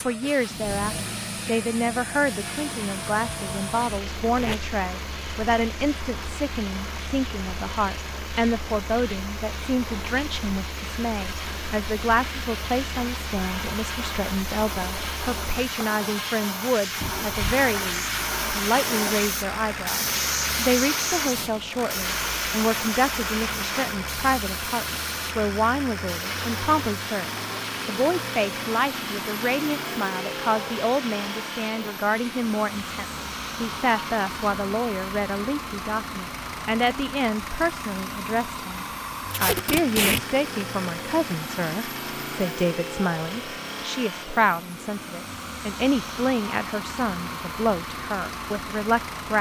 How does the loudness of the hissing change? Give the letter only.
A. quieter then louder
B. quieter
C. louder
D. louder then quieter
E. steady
D.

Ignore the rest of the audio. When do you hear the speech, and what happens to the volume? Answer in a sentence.
You can hear the speech from 0.0 to 49.3 s, at a steady volume.